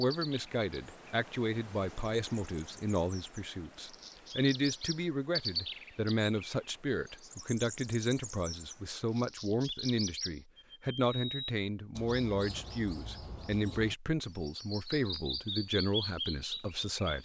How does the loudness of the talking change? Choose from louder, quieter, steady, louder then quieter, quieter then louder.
steady.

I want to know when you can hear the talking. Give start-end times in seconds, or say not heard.
0.0-17.1.